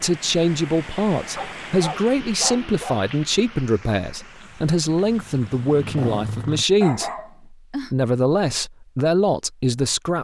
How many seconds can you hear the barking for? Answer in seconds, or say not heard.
4 s.